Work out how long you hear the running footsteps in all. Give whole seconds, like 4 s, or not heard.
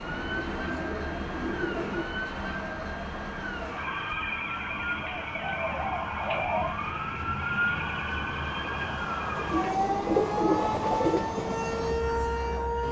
not heard.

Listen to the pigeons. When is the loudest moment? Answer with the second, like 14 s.
10 s.